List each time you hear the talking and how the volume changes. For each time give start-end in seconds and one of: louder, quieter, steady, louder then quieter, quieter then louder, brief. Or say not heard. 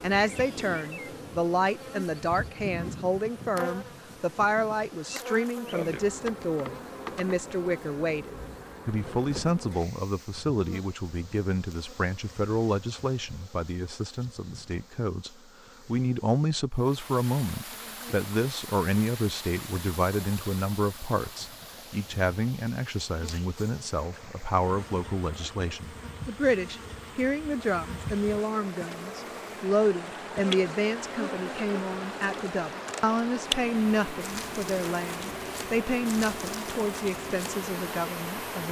0.0-38.6 steady.